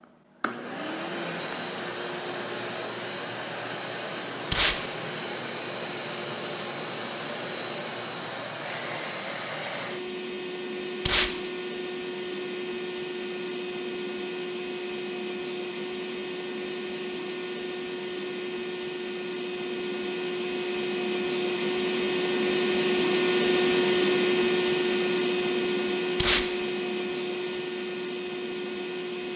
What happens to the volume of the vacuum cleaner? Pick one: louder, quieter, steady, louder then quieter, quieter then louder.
louder.